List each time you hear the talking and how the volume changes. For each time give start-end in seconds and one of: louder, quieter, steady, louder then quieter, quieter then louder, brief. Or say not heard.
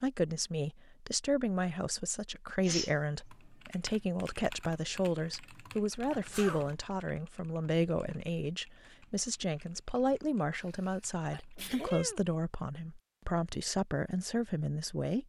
0.0-15.2 steady.